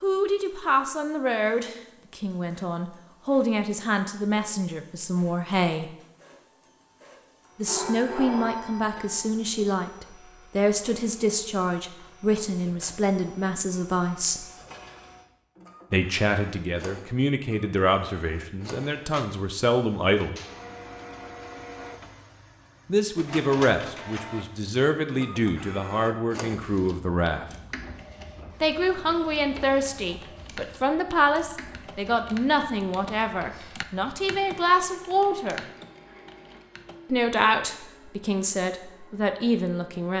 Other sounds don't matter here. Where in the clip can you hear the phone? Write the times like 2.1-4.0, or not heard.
7.7-9.2.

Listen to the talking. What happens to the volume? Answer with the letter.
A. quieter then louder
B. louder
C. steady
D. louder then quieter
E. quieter
C.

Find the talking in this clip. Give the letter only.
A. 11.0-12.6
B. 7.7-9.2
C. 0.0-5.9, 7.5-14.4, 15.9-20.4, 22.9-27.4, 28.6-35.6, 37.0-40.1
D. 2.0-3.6
C.